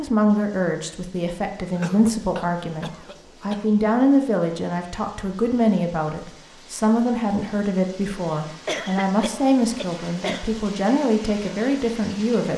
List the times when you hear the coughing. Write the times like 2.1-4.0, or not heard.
1.8-3.6, 8.7-10.4.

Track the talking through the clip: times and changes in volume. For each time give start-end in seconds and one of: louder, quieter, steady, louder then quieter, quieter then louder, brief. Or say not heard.
0.0-12.5 steady.